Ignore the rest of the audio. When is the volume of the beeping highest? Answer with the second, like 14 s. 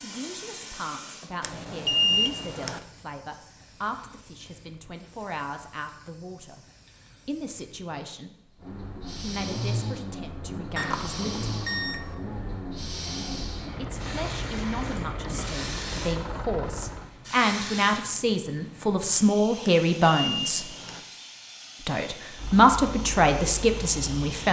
2 s.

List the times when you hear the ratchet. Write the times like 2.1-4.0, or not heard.
not heard.